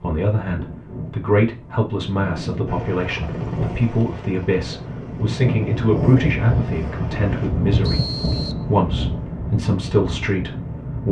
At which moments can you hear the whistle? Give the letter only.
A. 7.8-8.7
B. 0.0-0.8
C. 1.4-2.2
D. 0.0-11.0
A.